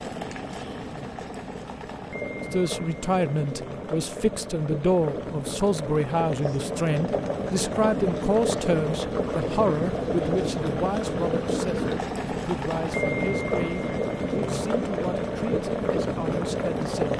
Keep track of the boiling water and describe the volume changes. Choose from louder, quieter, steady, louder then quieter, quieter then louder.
louder.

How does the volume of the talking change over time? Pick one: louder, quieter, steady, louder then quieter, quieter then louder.
quieter.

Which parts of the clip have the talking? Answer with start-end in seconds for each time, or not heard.
2.5-17.1.